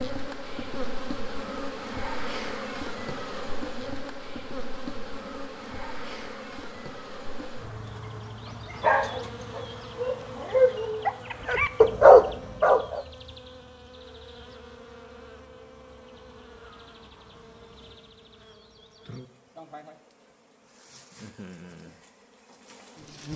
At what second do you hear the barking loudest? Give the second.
12 s.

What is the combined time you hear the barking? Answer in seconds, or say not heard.
5 s.